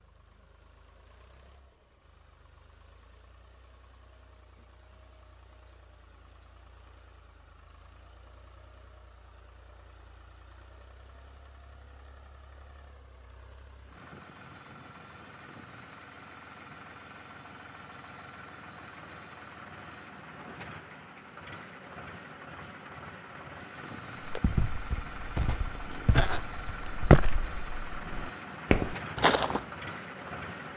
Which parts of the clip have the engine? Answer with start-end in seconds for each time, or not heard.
0.0-30.7.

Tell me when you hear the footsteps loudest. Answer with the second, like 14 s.
27 s.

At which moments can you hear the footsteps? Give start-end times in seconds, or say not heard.
24.2-29.6.